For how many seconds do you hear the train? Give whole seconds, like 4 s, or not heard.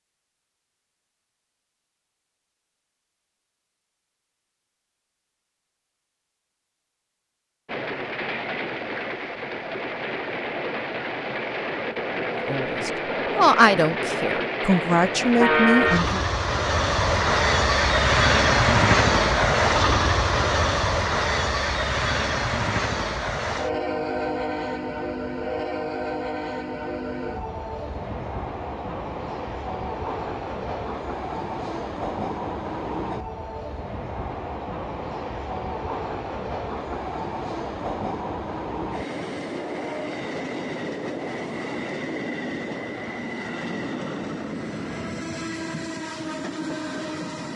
40 s.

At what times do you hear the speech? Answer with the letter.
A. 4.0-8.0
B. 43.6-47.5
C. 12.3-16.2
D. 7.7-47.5
C.